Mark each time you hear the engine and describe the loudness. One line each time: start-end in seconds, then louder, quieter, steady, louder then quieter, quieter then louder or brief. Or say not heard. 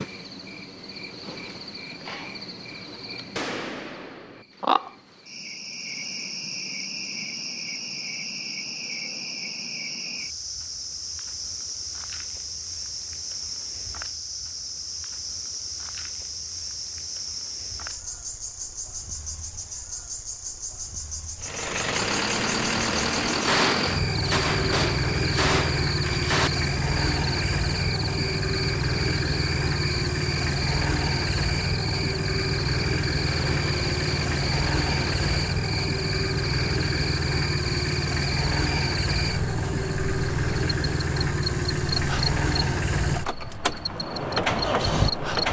21.4-45.4 steady.